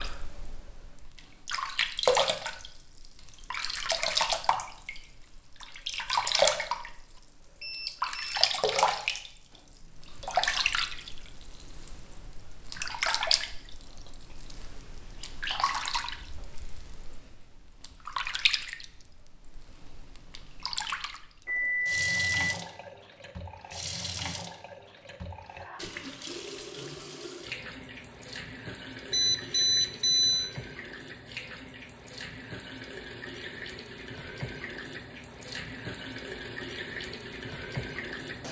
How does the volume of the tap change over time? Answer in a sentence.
The volume of the tap goes down.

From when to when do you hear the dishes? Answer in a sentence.
You can't hear the dishes here.